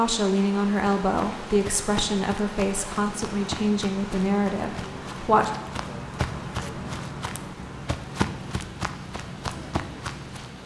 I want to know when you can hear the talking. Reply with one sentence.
You can hear the talking from 0.0 to 5.5 s.